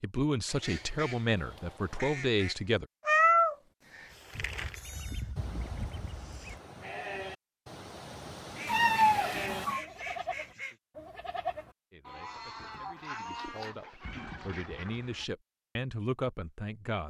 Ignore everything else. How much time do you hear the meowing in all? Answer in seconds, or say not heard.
3 s.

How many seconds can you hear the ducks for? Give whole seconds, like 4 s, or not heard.
9 s.